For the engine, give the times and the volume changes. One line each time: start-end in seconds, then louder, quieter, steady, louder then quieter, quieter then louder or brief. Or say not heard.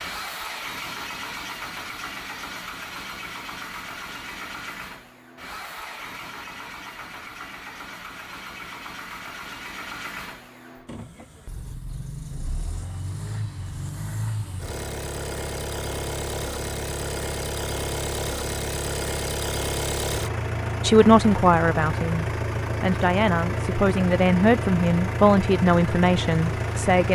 0.0-27.1 louder.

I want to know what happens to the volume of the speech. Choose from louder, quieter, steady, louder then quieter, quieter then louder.
steady.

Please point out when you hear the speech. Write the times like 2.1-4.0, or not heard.
20.8-27.1.